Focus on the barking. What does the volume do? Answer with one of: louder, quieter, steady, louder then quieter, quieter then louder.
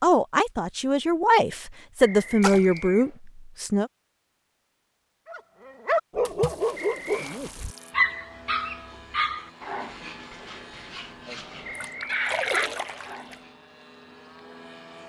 quieter then louder.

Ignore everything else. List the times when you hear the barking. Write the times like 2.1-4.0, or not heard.
5.2-13.5.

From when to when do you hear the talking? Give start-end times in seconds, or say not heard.
0.0-3.9.